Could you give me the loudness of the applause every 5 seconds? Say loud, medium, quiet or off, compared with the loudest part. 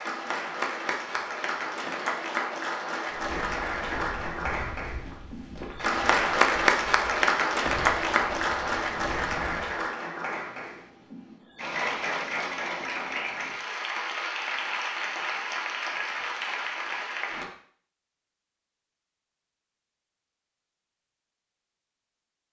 medium, loud, medium, medium, off.